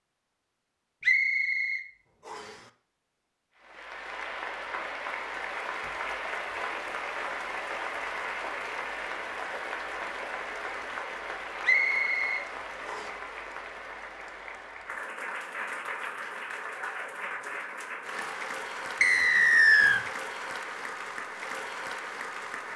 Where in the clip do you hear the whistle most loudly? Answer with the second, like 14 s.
20 s.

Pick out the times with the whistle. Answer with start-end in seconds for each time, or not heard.
1.0-2.5, 11.6-13.1, 19.0-20.0.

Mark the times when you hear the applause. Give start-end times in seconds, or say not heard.
3.5-22.7.